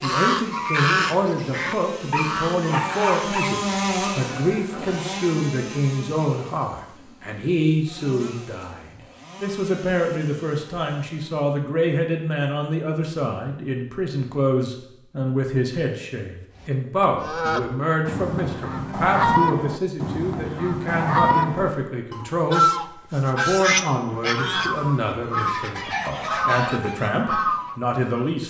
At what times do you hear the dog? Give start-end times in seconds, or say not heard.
2.1-3.5.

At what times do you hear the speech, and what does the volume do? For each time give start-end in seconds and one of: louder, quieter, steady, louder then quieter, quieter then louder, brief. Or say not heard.
0.0-28.4 steady.